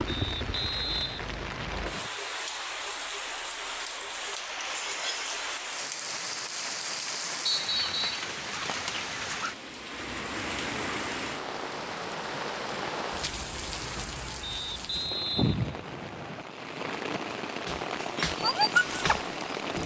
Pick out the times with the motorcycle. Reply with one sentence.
You can't hear the motorcycle here.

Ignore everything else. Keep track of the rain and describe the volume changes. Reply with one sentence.
The volume of the rain stays about the same.